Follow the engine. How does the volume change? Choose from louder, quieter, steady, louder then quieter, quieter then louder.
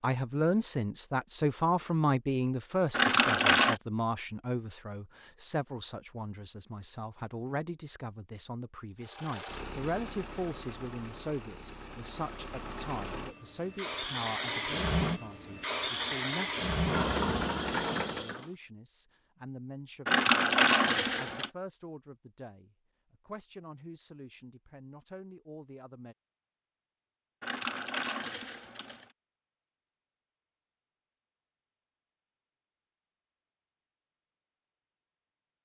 louder.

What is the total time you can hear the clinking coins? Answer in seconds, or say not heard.
4 s.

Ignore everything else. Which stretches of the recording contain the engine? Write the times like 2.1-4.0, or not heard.
9.0-18.5.